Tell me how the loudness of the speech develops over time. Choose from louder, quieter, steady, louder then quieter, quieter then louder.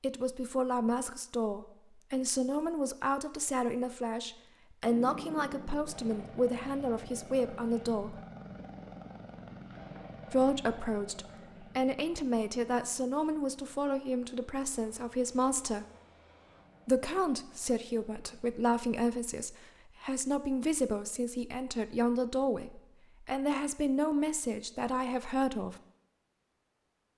steady.